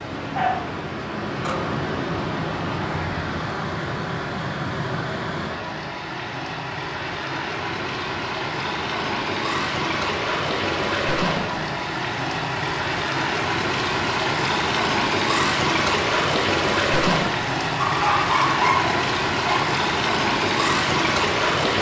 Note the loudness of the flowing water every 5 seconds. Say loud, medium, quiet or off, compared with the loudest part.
medium, medium, loud, loud, loud.